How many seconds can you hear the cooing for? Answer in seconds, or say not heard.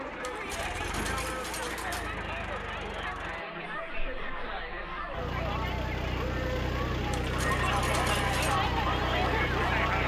not heard.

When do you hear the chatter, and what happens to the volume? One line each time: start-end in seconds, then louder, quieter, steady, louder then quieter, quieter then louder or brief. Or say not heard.
0.0-10.0 louder.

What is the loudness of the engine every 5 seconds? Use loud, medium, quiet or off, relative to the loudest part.
medium, loud.